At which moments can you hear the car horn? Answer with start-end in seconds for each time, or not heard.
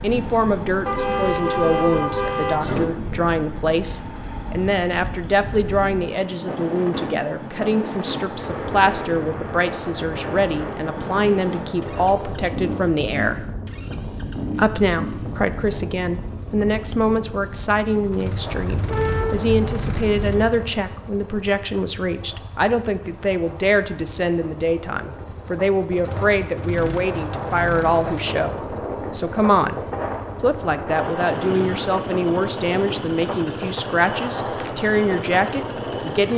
0.8-2.9, 18.5-20.5.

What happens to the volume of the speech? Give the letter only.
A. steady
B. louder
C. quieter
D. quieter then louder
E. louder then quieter
A.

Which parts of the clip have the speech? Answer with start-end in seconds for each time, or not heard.
0.0-13.4, 14.6-29.8, 30.4-36.3.